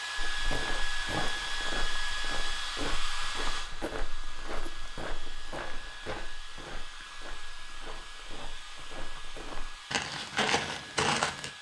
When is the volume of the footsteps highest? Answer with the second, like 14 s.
11 s.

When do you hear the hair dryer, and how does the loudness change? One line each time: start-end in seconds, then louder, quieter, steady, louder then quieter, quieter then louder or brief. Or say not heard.
0.0-11.5 quieter.